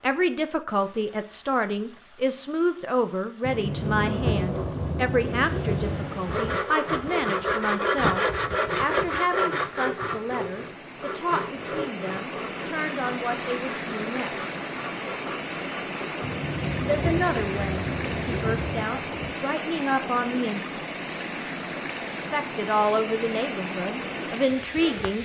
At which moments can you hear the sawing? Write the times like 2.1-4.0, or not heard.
6.2-16.2.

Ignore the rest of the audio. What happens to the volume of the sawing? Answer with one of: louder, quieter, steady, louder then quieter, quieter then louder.
quieter.